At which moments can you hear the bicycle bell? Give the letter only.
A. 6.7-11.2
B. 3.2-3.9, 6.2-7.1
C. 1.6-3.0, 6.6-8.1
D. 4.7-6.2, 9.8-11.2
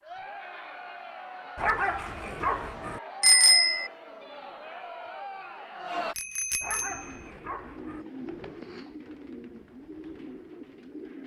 B.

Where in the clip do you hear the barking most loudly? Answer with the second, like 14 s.
2 s.